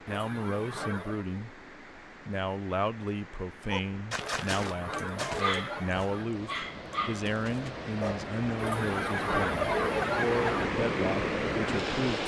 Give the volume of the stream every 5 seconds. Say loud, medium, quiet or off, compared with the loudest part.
quiet, medium, loud.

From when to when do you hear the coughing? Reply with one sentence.
You can hear the coughing from 0.1 to 1.2 s, from 4.2 to 6.3 s and from 8.6 to 10.7 s.